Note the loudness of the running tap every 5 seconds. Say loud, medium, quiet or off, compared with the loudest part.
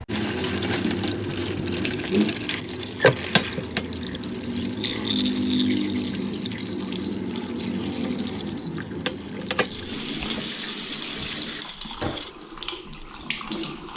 loud, loud, medium.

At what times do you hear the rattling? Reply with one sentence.
The rattling can be heard from 1.8 to 2.6 s, from 4.8 to 5.8 s and from 9.7 to 12.3 s.